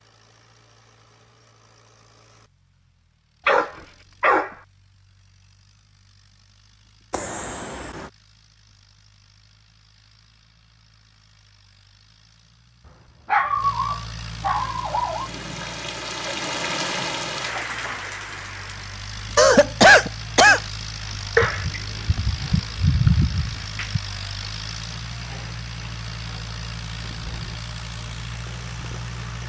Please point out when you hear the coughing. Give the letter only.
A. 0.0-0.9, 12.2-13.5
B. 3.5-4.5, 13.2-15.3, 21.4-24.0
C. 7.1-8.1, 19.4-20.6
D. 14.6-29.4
C.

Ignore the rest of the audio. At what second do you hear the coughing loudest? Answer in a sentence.
The loudest moment of the coughing is at 20 seconds.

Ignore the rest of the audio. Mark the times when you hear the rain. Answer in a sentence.
The rain can be heard from 14.6 to 29.4 s.